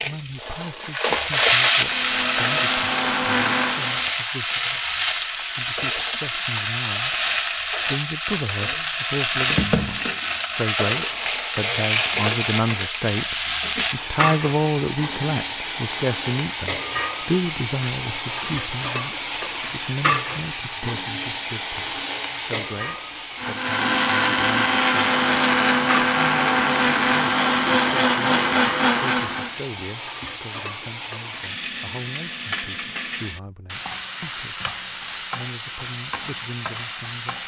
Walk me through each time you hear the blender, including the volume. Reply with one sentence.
You can hear the blender briefly from 1.7 to 4.1 s; and from 23.4 to 29.6 s, at a steady volume.